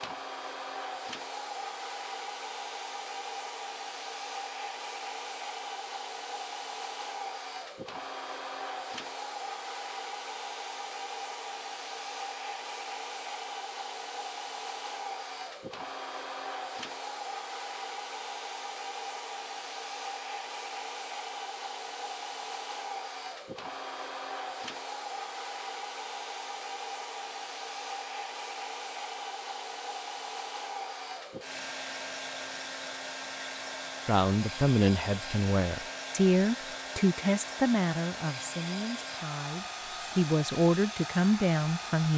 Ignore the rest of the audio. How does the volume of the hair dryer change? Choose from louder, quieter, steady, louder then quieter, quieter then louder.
steady.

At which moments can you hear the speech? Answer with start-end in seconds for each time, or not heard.
34.0-42.1.